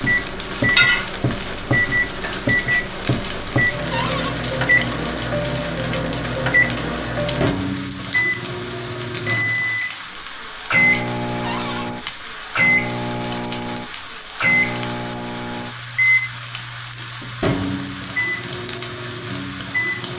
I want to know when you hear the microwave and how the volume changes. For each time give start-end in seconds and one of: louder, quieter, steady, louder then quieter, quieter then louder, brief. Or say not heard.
0.0-20.1 steady.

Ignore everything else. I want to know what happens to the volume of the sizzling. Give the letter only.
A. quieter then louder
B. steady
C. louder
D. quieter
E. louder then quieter
D.